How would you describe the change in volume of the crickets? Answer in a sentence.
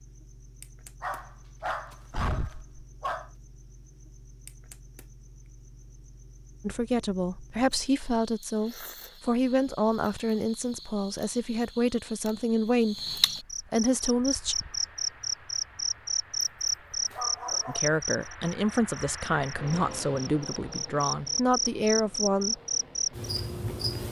The volume of the crickets goes up.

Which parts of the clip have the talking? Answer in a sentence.
The talking can be heard from 6.6 to 14.6 s and from 17.6 to 22.6 s.